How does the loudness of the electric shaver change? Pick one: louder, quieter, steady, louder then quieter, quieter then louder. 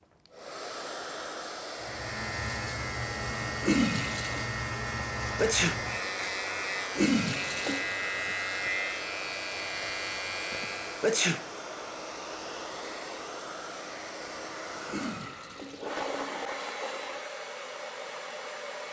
steady.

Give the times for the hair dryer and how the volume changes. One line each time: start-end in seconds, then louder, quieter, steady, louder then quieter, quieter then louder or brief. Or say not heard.
0.0-18.8 steady.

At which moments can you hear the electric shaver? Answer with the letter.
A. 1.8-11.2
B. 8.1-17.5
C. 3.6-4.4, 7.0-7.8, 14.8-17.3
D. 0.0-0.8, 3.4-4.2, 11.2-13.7
A.